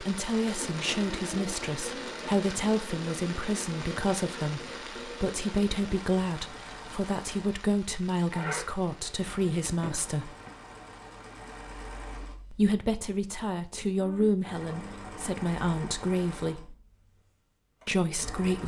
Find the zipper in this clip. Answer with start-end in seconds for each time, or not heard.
8.3-10.8.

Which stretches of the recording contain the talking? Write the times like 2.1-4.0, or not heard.
0.0-10.3, 12.5-16.8, 17.9-18.6.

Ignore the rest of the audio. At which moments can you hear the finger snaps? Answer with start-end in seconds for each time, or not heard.
not heard.